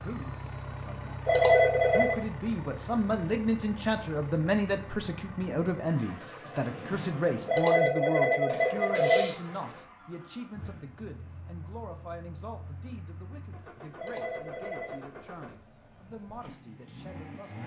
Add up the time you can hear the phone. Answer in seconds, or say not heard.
4 s.